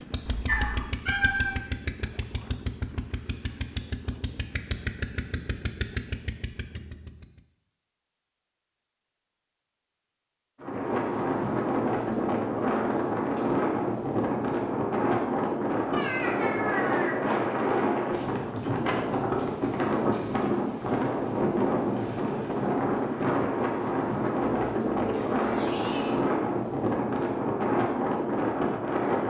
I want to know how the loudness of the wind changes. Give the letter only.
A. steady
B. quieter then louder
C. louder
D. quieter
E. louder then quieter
A.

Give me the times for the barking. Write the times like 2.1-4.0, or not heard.
not heard.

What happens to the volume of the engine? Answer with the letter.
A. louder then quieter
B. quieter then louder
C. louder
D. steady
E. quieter
D.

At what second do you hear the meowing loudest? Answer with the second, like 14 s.
1 s.